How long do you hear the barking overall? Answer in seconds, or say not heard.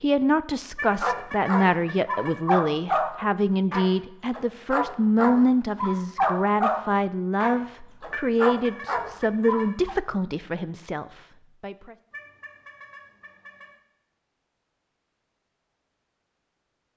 9 s.